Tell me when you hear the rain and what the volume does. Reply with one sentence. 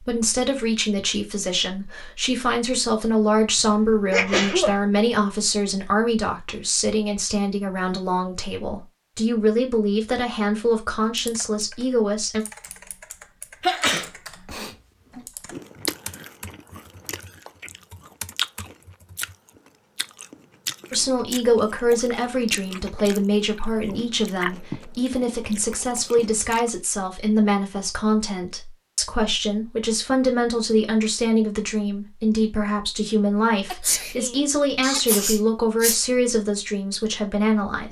The rain can't be heard in this clip.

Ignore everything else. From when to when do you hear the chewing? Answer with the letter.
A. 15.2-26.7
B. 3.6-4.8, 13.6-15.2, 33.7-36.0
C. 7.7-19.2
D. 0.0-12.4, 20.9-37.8
A.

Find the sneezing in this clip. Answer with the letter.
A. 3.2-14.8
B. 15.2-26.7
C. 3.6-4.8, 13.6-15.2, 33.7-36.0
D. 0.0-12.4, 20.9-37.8
C.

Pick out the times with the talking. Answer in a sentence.
The talking can be heard from 0.0 to 12.4 s and from 20.9 to 37.8 s.